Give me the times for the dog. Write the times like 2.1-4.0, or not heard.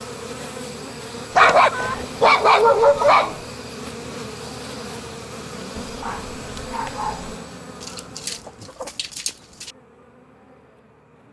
1.4-3.4, 5.8-7.3.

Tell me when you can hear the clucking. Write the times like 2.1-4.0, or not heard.
1.4-2.0, 7.8-9.8.